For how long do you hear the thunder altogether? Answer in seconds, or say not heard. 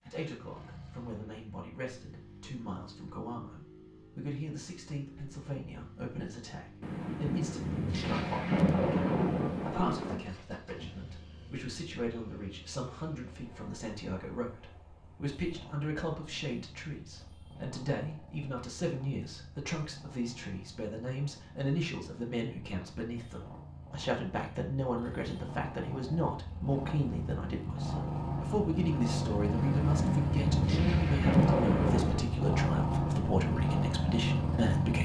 6 s.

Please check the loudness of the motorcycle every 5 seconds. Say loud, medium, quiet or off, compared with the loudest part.
quiet, quiet, quiet, quiet, quiet, medium, loud.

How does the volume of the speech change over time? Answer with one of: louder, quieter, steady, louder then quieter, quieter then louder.
louder.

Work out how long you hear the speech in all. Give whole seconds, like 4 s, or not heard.
35 s.